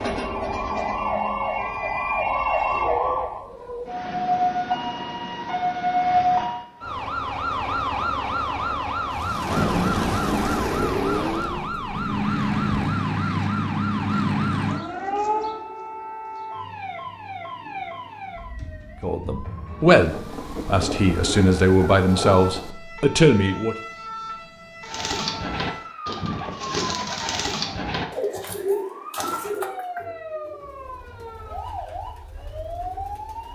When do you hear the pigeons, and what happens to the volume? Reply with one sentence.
You can hear the pigeons from 24.8 to 33.4 s, getting quieter.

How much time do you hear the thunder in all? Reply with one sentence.
The thunder can be heard for 6 seconds in total.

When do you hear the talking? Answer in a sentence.
The talking can be heard from 19.0 to 23.8 s.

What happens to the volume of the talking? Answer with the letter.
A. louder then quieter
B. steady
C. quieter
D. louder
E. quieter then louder
E.